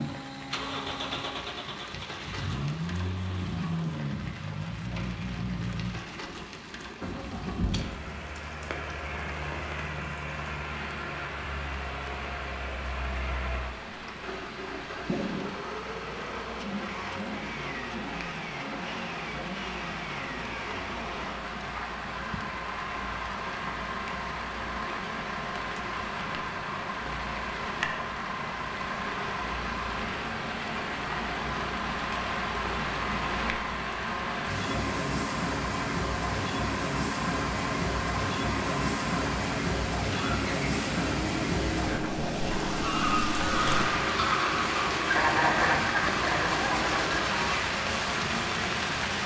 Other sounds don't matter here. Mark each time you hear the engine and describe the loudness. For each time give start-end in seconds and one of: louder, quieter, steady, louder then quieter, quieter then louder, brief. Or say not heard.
0.0-47.3 steady.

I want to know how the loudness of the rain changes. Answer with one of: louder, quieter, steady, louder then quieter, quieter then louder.
louder.